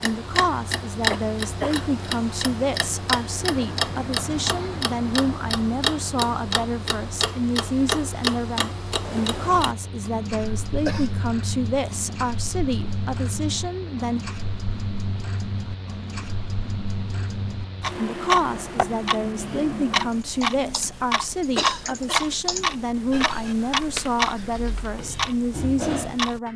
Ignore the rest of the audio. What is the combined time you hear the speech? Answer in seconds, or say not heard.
23 s.